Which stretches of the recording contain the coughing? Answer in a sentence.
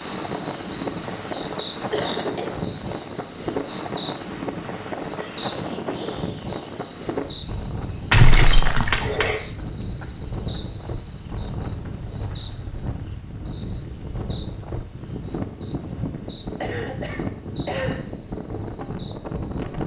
The coughing can be heard from 1.9 to 2.5 s, from 8.1 to 9.4 s and from 16.6 to 18.1 s.